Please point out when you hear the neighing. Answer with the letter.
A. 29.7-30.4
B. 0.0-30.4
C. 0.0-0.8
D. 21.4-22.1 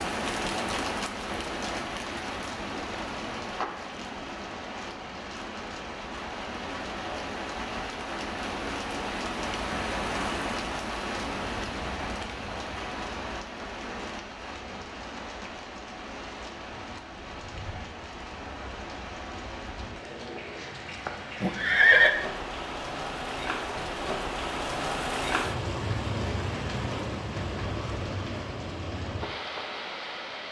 D.